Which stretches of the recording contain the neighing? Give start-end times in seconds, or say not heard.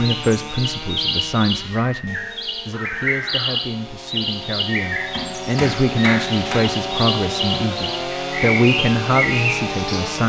2.7-3.6.